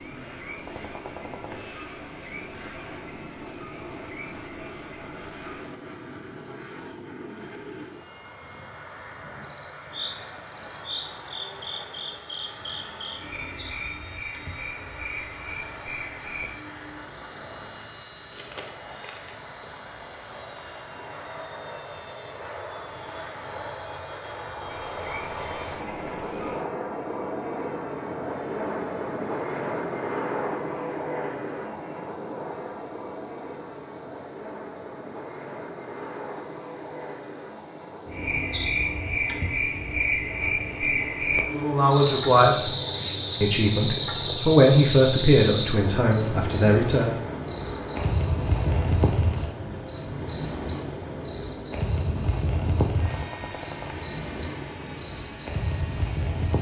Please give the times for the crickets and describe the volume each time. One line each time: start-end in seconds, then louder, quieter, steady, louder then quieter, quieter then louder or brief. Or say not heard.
0.0-56.5 louder.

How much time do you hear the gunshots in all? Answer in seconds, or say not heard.
3 s.